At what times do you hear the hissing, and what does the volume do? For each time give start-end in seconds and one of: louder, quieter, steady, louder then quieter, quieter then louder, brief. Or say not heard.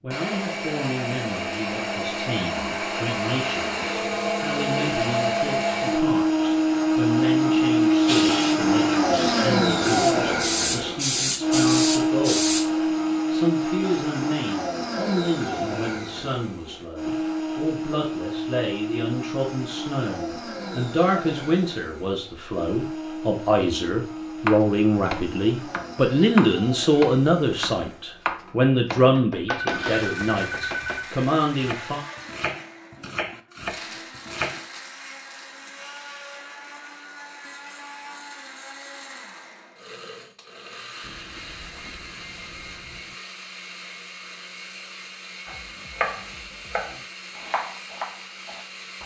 8.1-12.7 louder.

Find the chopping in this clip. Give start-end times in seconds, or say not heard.
24.4-34.6, 45.5-49.0.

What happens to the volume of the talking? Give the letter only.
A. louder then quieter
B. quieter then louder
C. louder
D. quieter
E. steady
C.